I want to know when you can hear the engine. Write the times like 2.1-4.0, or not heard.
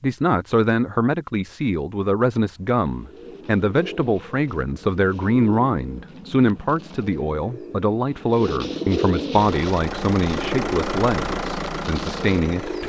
9.3-12.8.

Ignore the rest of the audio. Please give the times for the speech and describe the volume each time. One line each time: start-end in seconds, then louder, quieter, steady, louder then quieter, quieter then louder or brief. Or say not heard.
0.0-12.8 steady.